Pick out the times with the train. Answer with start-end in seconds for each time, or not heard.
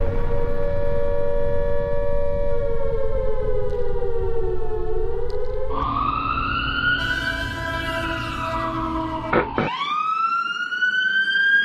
7.0-9.3.